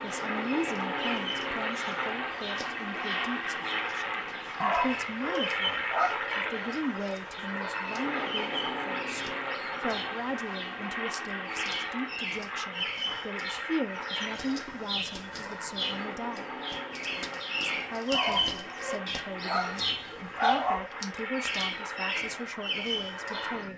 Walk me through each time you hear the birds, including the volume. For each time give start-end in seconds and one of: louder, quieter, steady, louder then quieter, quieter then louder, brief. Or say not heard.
0.0-23.6 louder.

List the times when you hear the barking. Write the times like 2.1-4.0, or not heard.
4.6-6.2, 18.1-20.9.